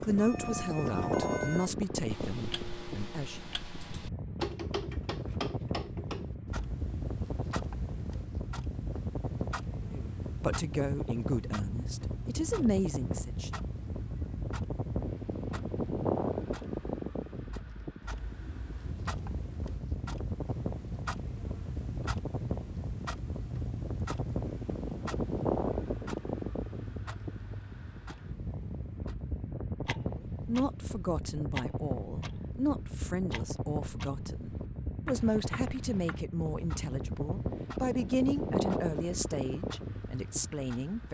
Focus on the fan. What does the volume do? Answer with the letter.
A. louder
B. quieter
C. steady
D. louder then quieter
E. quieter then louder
C.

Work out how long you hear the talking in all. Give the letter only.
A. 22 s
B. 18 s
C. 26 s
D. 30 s
B.